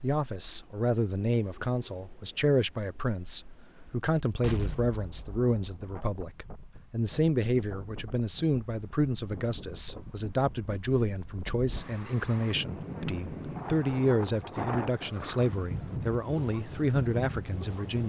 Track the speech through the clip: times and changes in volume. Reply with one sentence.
The speech can be heard from 0.0 to 18.0 s, at a steady volume.